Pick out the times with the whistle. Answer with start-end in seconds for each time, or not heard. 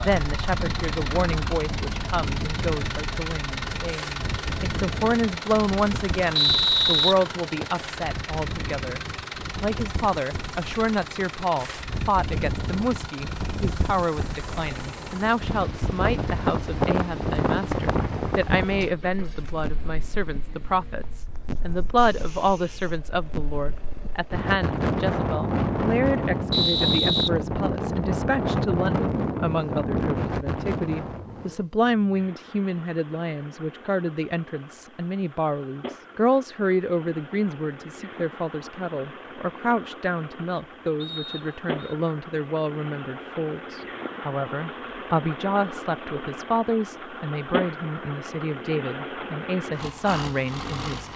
6.3-7.8, 26.5-28.0, 41.0-42.0.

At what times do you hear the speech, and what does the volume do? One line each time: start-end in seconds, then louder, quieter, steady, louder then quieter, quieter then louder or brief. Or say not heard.
0.0-51.1 steady.